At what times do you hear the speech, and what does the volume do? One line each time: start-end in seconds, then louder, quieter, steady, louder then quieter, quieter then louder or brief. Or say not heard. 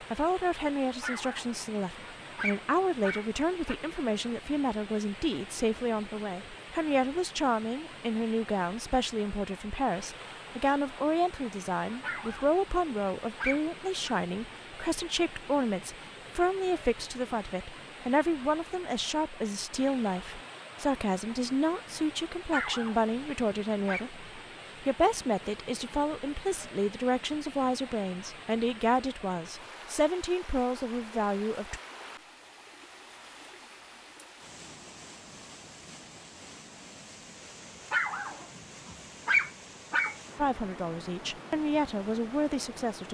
0.1-31.8 steady
40.4-43.0 brief.